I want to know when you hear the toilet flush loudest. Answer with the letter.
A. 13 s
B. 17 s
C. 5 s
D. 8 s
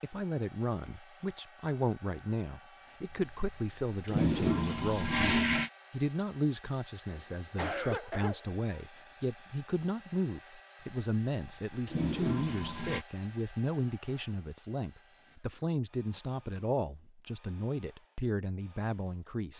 C.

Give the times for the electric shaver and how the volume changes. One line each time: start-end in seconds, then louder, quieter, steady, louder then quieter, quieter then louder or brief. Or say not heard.
not heard.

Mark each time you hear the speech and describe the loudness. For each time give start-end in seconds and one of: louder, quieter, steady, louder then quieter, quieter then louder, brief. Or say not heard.
0.0-19.5 steady.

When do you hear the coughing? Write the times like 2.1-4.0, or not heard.
7.1-8.8.